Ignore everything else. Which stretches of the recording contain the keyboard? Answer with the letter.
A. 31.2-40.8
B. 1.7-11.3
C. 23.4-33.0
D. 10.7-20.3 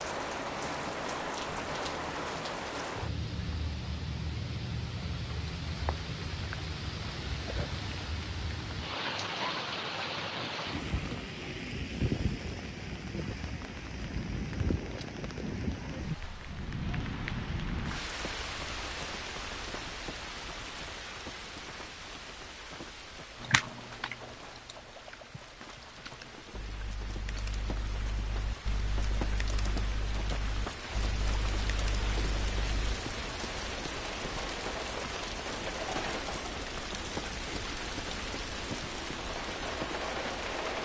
C.